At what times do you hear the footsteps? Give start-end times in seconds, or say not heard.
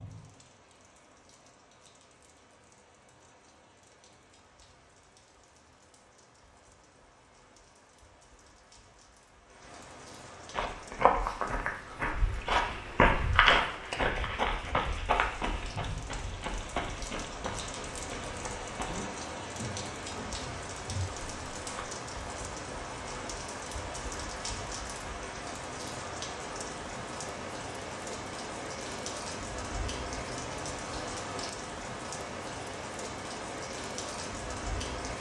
10.5-21.9.